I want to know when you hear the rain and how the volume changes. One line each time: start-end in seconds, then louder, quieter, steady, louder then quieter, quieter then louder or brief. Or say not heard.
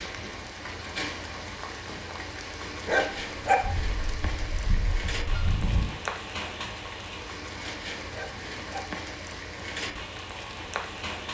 0.0-11.2 steady.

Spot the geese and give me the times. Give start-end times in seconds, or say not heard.
3.6-5.8.